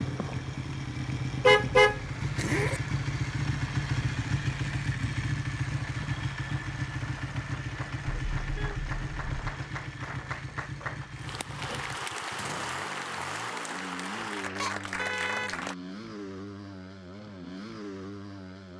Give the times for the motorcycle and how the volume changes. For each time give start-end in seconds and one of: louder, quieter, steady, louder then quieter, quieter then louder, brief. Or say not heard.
0.0-18.7 quieter.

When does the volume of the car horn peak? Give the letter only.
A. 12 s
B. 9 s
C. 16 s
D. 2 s
D.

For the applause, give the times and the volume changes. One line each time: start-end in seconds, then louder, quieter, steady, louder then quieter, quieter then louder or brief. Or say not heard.
0.0-15.8 louder.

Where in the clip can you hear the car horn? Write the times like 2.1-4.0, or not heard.
1.4-2.8, 8.2-9.4, 14.6-15.6.